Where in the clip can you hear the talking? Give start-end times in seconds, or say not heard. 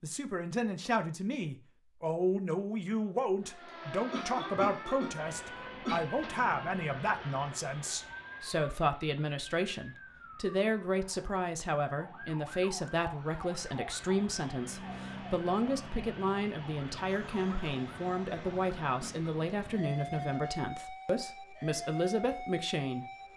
0.0-23.1.